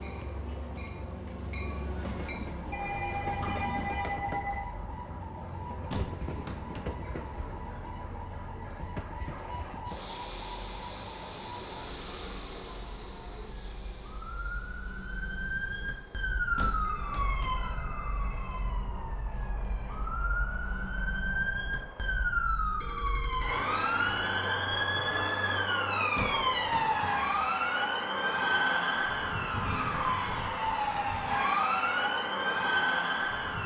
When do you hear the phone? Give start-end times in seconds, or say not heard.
2.7-4.7, 16.8-18.6, 22.8-24.5.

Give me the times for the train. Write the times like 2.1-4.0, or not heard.
0.0-22.6.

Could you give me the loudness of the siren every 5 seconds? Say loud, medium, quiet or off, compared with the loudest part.
quiet, quiet, quiet, medium, loud, loud, loud.